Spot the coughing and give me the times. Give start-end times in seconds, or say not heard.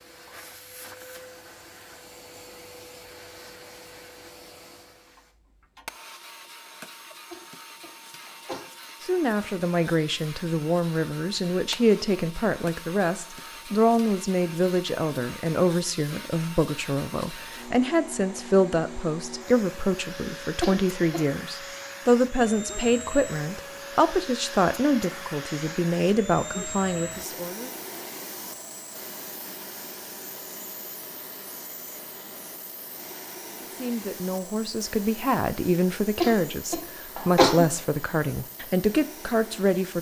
7.3-8.6, 20.6-21.2, 36.2-37.6.